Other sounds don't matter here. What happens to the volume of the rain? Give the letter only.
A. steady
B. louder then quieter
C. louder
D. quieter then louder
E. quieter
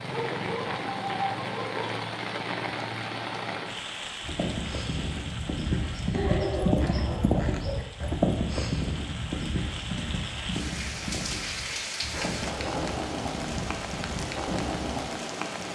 D.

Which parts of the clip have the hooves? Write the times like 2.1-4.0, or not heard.
4.2-15.1.